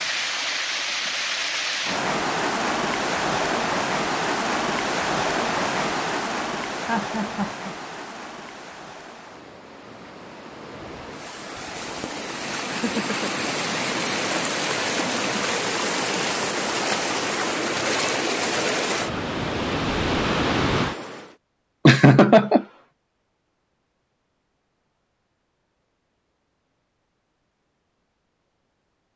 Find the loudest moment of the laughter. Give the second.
22 s.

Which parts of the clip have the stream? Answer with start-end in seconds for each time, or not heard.
0.0-21.4.